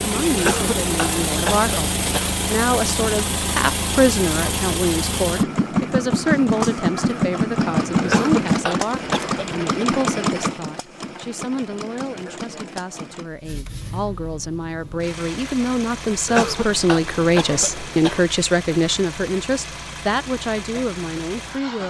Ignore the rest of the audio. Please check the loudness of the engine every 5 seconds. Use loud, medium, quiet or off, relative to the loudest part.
loud, loud, medium, quiet, quiet.